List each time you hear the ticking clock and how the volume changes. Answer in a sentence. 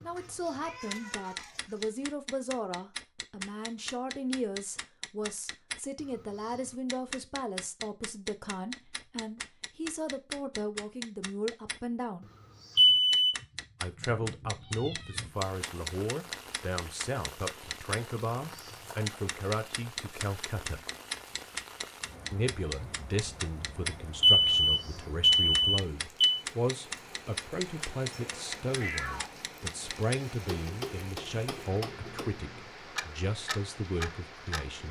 You can hear the ticking clock from 0.0 to 34.6 s, at a steady volume.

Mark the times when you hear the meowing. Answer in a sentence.
The meowing can be heard from 0.1 to 1.9 s, from 13.3 to 15.3 s and from 28.7 to 29.4 s.